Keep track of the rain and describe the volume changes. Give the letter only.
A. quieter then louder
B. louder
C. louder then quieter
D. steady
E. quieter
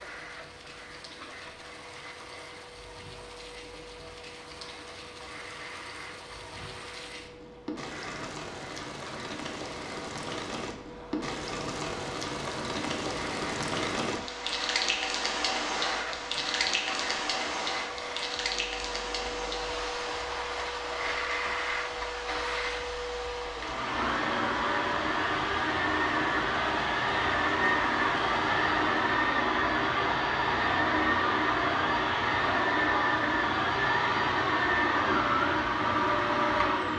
C.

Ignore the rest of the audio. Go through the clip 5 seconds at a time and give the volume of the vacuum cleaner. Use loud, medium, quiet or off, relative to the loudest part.
quiet, quiet, quiet, quiet, medium, loud, loud, loud.